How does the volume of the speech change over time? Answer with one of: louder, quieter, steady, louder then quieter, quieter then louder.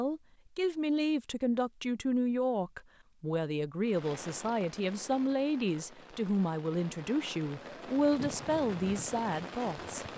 steady.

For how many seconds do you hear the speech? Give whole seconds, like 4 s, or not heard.
10 s.